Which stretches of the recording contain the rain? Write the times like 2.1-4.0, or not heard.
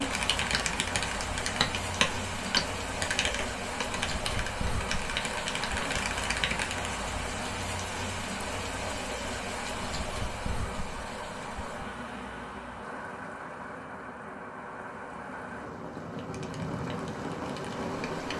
0.0-18.3.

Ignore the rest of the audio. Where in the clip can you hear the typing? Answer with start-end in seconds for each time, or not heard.
0.0-6.9, 16.2-18.3.